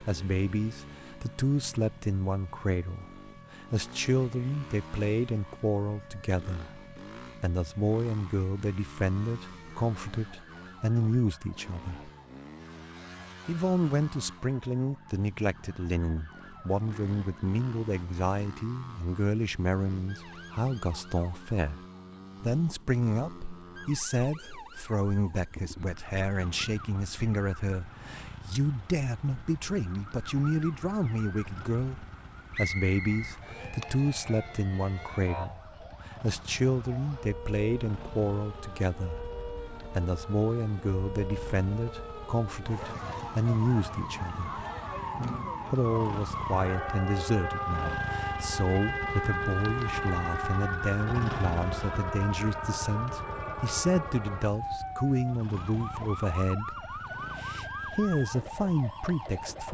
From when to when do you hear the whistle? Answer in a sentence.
You can hear the whistle from 32.5 to 33.4 s.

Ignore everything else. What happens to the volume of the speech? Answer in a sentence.
The volume of the speech stays about the same.